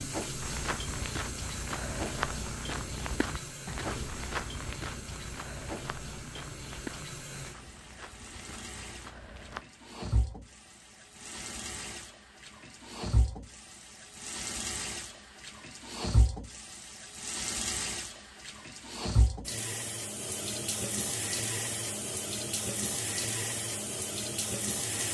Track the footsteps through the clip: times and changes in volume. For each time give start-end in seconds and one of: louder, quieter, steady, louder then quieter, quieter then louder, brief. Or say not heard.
0.4-9.7 quieter.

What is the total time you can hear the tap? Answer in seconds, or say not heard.
25 s.